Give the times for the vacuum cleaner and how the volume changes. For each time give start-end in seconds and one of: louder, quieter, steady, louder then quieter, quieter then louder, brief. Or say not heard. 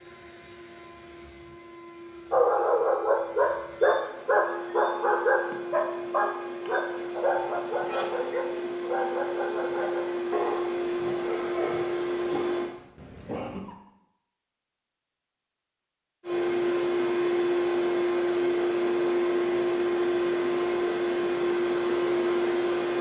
0.0-12.7 louder
16.2-22.9 steady.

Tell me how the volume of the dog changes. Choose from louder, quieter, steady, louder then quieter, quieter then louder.
quieter.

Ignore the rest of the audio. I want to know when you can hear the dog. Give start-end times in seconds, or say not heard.
2.3-13.8.